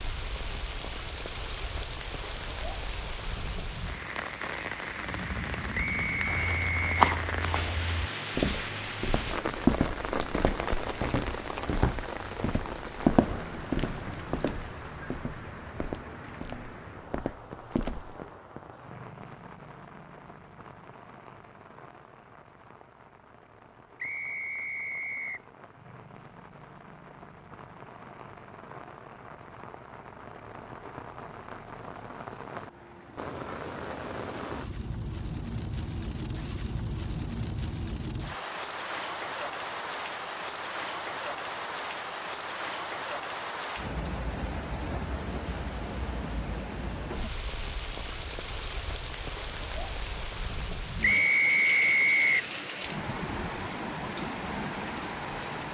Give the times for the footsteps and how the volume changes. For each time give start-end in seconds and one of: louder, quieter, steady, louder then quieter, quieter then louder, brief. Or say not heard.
6.2-18.1 quieter.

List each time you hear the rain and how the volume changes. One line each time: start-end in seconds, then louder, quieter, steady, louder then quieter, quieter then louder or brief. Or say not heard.
0.0-55.7 quieter then louder.